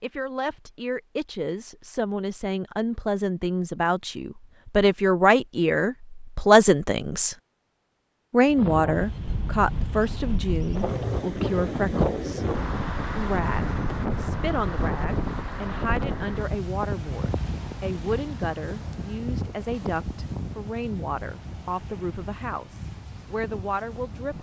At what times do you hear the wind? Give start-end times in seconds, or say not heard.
8.4-24.3.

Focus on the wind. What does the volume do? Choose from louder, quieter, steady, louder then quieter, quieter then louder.
quieter.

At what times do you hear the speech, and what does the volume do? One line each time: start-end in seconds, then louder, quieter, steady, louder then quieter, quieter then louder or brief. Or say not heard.
0.0-7.3 louder
8.3-24.3 quieter.